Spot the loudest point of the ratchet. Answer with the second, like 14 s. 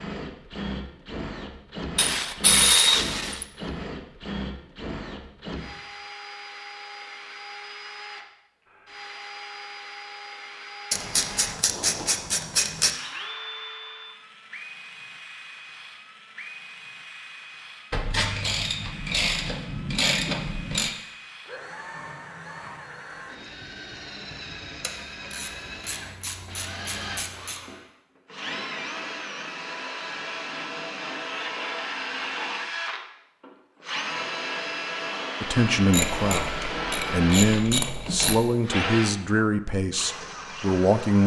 3 s.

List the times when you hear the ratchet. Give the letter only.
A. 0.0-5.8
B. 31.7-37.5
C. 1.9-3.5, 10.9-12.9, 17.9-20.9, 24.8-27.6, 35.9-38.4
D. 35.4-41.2
C.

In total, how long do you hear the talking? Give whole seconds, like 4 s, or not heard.
6 s.